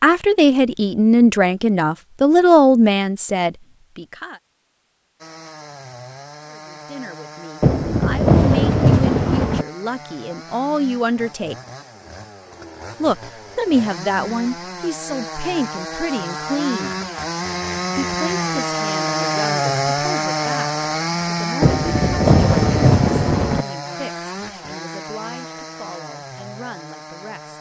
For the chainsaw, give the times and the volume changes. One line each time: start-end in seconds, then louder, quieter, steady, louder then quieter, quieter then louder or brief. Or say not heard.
5.2-27.5 louder then quieter.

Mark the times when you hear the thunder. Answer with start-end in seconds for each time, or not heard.
7.6-9.7, 21.6-23.6.